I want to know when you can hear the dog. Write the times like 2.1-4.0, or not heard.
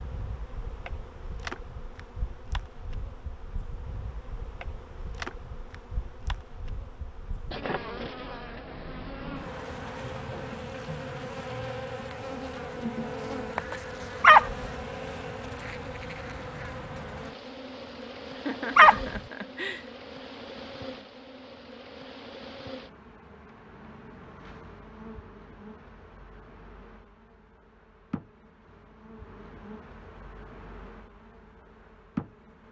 14.2-14.7, 18.8-19.2.